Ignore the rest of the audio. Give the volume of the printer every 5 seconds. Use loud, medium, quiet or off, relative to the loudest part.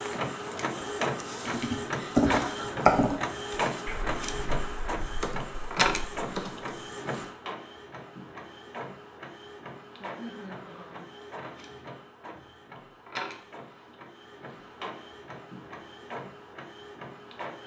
loud, loud, medium, medium.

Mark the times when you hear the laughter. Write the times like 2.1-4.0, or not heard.
1.9-2.6, 10.0-11.1.